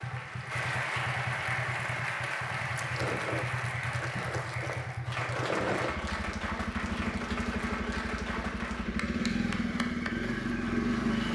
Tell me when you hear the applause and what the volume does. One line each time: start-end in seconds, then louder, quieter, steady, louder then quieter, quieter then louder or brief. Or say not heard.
0.0-11.3 quieter.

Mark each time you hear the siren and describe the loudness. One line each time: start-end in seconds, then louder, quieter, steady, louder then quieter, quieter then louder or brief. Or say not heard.
not heard.